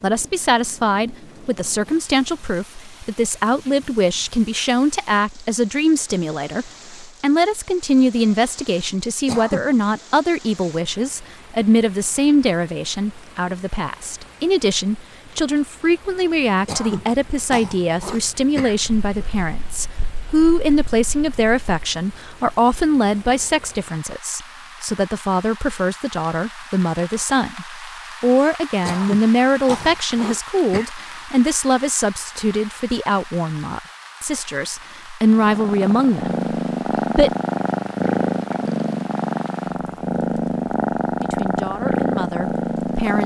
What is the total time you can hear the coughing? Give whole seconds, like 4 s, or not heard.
5 s.